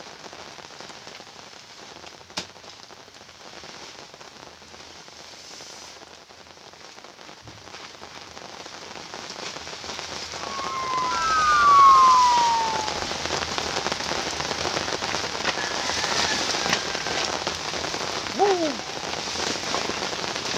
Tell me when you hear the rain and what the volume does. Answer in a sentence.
The rain can be heard from 0.0 to 20.5 s, getting louder.